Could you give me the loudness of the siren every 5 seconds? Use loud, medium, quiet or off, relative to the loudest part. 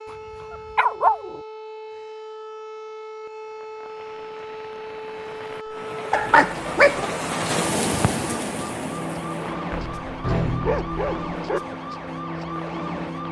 medium, loud, loud.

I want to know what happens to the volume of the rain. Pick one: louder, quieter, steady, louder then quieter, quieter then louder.
louder then quieter.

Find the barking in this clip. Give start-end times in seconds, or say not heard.
0.1-1.4, 6.1-7.0, 9.7-11.6.